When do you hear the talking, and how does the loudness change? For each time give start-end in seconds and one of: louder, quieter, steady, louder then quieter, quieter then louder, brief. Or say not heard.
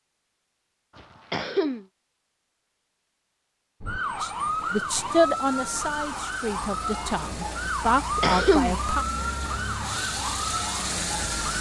4.2-9.1 quieter then louder.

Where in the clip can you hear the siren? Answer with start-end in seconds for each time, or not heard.
3.8-11.5.